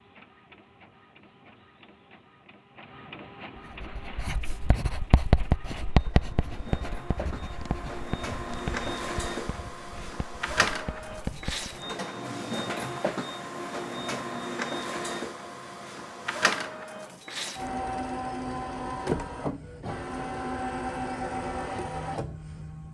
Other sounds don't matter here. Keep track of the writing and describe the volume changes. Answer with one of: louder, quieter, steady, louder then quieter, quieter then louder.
quieter.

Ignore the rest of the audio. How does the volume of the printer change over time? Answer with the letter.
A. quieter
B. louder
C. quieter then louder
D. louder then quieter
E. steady
B.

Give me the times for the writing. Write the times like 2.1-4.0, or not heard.
3.7-11.8.